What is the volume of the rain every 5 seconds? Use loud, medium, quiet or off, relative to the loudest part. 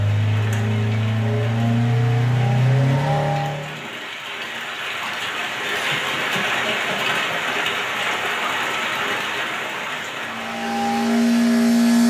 medium, loud, medium.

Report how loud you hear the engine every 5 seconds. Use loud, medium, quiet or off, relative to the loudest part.
loud, off, loud.